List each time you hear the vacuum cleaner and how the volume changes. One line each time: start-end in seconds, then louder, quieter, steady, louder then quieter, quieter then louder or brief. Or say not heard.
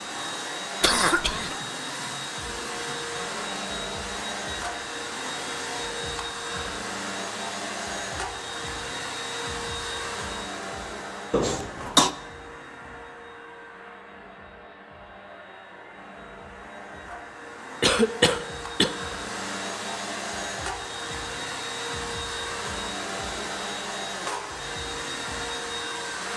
0.0-26.3 quieter then louder.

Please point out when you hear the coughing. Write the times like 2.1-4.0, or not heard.
0.8-1.6, 11.3-12.1, 17.8-18.9.